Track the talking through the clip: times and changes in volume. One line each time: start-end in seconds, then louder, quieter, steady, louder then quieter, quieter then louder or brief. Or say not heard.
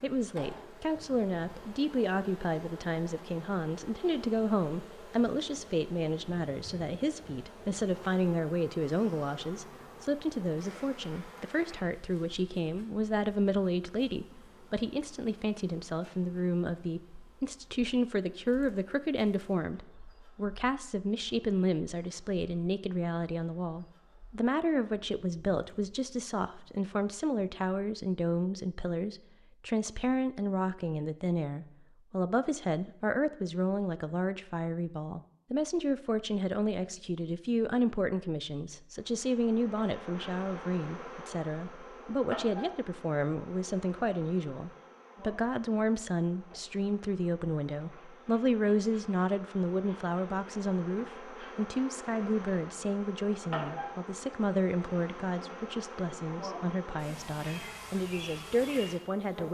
0.0-59.5 steady.